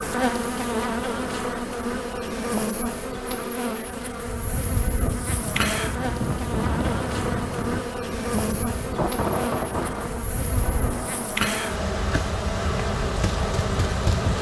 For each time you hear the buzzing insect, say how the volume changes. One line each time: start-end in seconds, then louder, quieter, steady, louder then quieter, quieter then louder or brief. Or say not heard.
0.0-14.3 steady.